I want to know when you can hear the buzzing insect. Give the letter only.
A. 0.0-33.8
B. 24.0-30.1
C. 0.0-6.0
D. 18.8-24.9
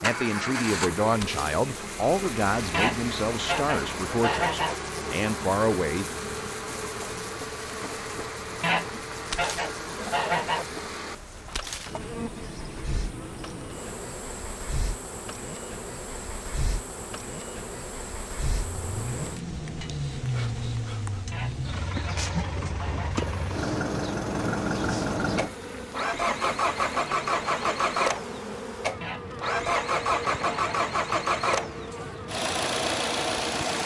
A.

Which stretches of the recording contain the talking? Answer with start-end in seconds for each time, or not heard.
0.0-6.0.